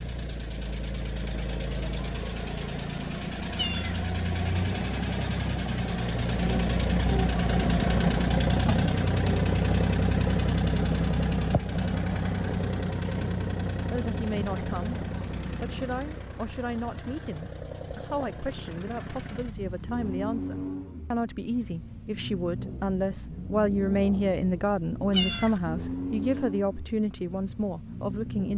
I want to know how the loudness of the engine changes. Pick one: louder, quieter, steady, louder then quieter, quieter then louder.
louder then quieter.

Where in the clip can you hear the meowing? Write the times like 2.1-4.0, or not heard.
3.5-4.0, 25.1-25.6.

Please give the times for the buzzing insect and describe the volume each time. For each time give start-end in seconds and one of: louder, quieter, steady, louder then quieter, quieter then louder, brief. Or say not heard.
not heard.